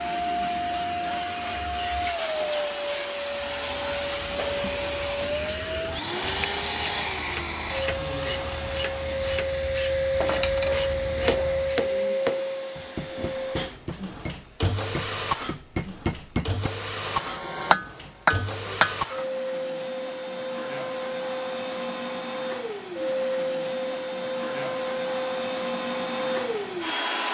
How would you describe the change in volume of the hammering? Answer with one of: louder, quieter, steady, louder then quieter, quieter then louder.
quieter then louder.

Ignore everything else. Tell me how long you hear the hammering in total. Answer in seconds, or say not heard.
9 s.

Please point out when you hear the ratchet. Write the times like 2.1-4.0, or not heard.
3.4-11.9.